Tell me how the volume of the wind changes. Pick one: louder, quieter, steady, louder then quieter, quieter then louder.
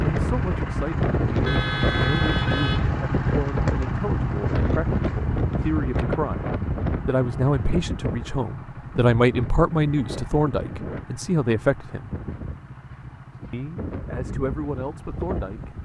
quieter.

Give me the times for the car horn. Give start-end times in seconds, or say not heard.
1.4-2.9.